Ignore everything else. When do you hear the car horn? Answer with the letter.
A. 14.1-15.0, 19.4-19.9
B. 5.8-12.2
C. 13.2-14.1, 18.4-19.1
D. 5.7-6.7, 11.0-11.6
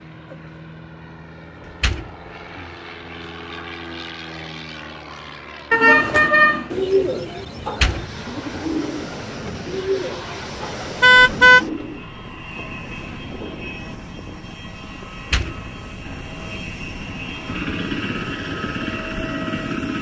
D.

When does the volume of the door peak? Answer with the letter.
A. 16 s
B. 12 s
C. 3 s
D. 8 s
D.